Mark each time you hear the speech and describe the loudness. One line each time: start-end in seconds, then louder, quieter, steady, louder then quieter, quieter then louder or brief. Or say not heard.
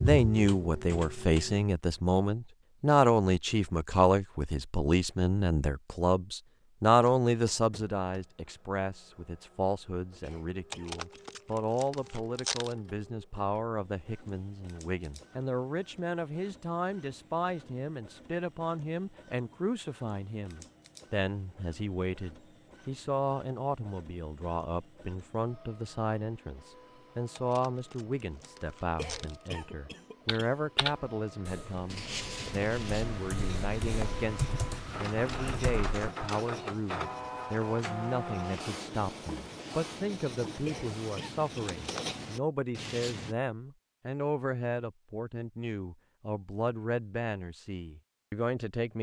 0.0-48.9 quieter.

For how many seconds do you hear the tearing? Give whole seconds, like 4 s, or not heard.
5 s.